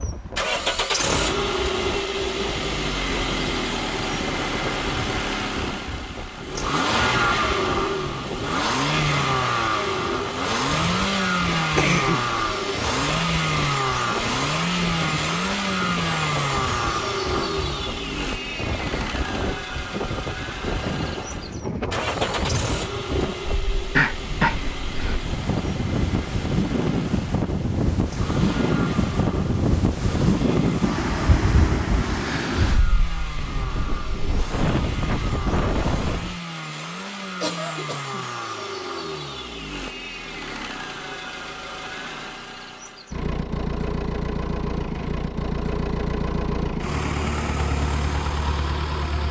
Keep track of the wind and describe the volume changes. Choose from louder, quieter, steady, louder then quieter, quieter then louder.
louder.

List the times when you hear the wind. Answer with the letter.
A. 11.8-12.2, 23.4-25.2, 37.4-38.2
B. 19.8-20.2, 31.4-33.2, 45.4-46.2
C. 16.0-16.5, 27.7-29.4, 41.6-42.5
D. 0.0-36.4
D.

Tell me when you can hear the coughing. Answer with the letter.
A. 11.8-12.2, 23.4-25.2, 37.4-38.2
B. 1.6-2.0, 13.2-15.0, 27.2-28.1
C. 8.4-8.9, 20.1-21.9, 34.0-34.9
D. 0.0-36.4
A.